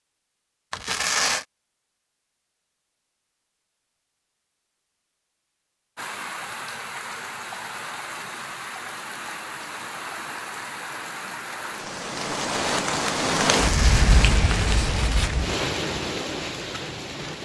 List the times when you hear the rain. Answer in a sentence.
The rain can be heard from 6.0 to 17.4 s.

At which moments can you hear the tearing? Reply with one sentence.
You can hear the tearing from 0.7 to 1.4 s and from 13.6 to 15.3 s.